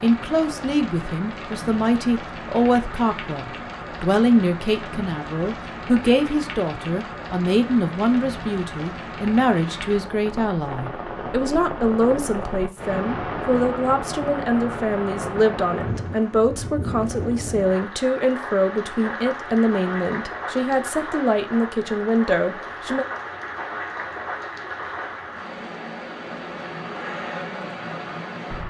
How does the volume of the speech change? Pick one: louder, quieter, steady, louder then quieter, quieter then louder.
steady.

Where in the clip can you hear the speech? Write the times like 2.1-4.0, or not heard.
0.0-23.1.